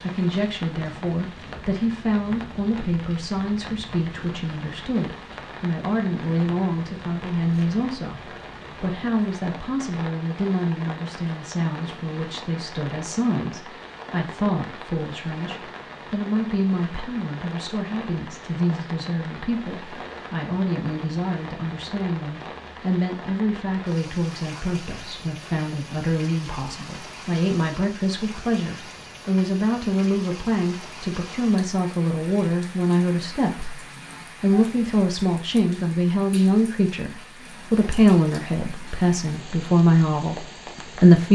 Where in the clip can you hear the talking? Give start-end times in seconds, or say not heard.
0.0-41.3.